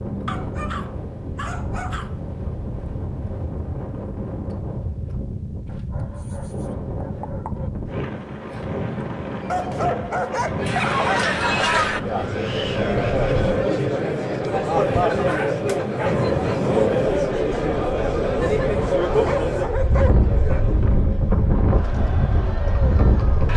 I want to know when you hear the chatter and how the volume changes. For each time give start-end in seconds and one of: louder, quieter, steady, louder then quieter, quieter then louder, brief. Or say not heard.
10.6-23.5 quieter.